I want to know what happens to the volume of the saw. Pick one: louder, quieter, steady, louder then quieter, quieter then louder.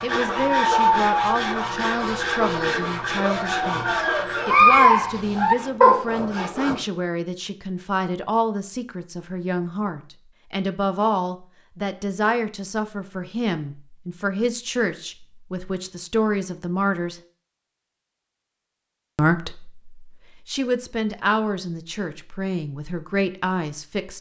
quieter.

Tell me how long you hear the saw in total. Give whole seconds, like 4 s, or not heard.
7 s.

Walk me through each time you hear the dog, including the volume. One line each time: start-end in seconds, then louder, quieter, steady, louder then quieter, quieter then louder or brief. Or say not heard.
0.4-6.0 quieter then louder.